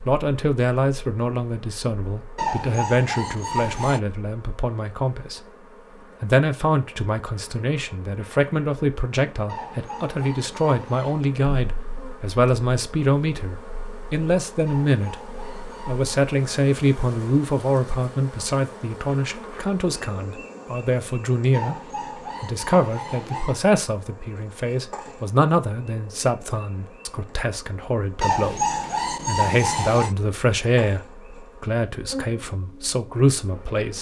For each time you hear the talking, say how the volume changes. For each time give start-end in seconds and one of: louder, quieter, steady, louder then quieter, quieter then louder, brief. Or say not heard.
0.1-33.9 steady.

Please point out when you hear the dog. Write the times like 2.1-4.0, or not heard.
2.4-4.0, 9.4-11.3, 14.7-16.1, 21.5-23.6, 28.2-30.1.